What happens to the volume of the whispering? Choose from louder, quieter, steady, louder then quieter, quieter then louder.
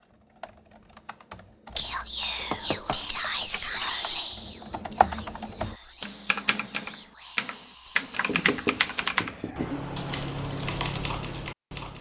quieter.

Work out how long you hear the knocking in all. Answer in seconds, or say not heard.
3 s.